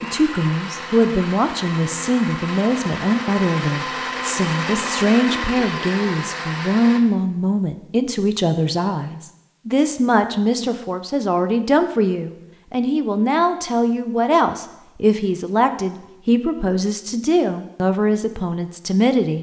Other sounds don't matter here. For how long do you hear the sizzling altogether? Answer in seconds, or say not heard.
not heard.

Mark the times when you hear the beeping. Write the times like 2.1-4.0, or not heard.
not heard.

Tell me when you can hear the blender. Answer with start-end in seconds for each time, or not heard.
0.0-7.0.